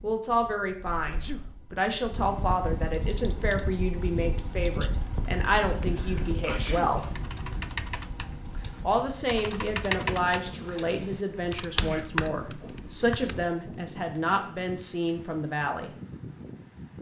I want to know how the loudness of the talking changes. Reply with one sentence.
The volume of the talking stays about the same.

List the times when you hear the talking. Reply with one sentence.
You can hear the talking from 0.0 to 7.1 s and from 8.8 to 15.9 s.